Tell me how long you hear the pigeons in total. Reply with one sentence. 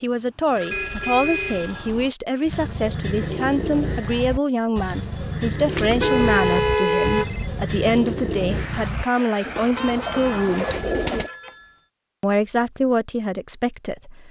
You can hear the pigeons for 9 seconds altogether.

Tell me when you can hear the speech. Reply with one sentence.
The speech can be heard from 0.0 to 10.8 s and from 12.2 to 14.2 s.